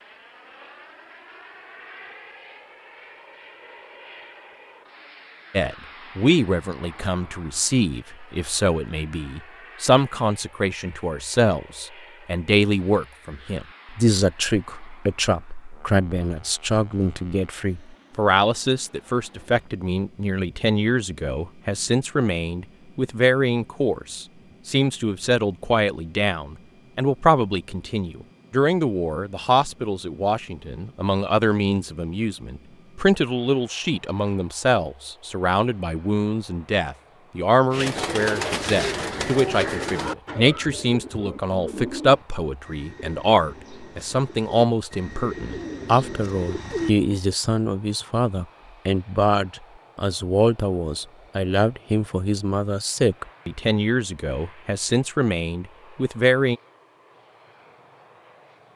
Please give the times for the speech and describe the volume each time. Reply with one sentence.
The speech can be heard from 5.5 to 56.5 s, at a steady volume.